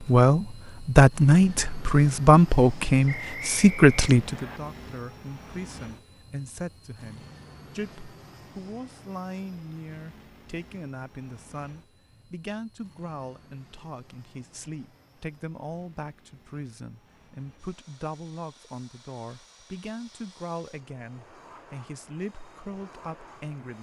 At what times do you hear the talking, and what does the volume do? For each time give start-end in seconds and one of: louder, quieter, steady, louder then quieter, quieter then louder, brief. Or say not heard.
0.0-23.7 quieter.